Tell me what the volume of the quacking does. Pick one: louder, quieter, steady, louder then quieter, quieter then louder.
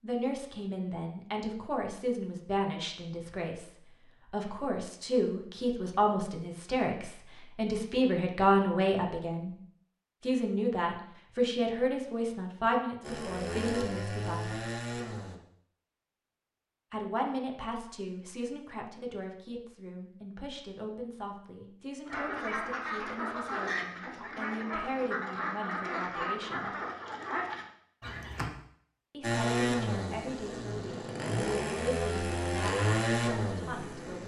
steady.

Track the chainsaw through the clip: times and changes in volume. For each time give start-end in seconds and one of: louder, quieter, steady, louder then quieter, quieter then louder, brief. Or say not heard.
13.0-15.3 brief
29.2-34.2 quieter then louder.